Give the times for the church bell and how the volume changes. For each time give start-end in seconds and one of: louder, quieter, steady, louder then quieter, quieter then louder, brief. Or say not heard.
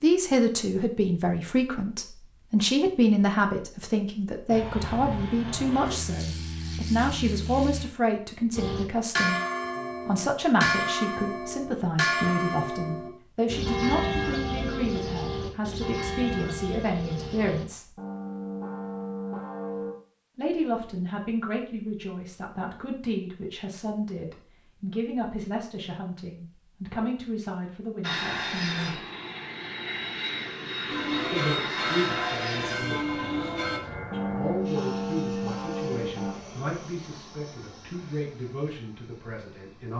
8.6-19.9 quieter
30.9-36.4 steady.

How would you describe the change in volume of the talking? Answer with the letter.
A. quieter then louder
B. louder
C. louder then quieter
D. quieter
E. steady
D.